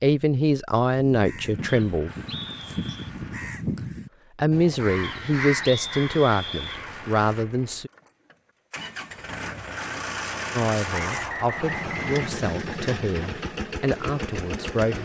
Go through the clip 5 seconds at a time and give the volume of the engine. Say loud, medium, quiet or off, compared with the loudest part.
quiet, medium, loud.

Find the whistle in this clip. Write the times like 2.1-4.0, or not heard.
1.6-3.1, 5.0-6.8, 10.9-12.4.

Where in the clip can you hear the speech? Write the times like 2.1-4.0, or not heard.
0.0-2.1, 4.3-7.9, 10.5-14.9.